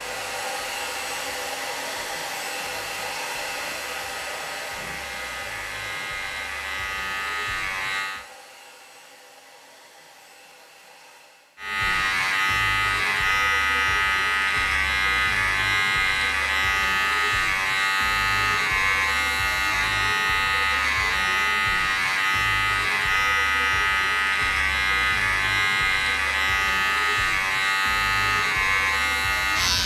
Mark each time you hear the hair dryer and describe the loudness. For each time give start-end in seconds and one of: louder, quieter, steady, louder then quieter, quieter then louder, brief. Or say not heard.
0.0-11.7 quieter.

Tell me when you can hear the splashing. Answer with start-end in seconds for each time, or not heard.
not heard.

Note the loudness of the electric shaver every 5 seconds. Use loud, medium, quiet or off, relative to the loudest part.
quiet, medium, loud, loud, loud, loud.